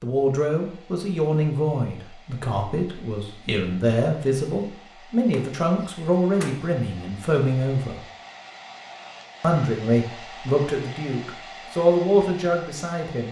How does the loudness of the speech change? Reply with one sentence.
The loudness of the speech stays about the same.